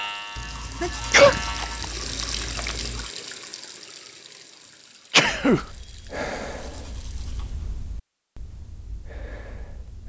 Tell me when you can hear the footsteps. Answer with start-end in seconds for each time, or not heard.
not heard.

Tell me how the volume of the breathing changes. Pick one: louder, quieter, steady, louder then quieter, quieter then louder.
quieter then louder.